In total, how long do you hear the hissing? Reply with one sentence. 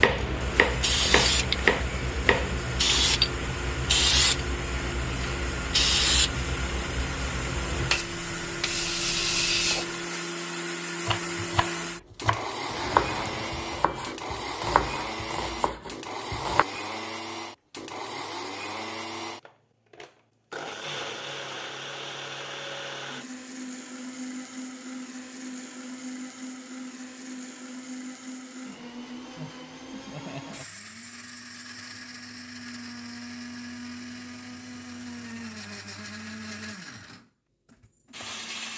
The hissing can be heard for 10 seconds in total.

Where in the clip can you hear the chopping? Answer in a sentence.
The chopping can be heard from 0.0 to 2.6 s and from 11.1 to 16.6 s.